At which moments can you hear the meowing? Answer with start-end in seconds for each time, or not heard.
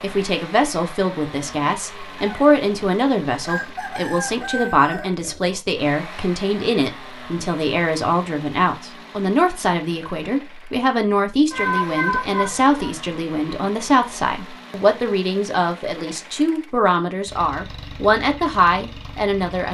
11.5-12.9.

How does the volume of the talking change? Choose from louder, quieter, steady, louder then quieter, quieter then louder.
steady.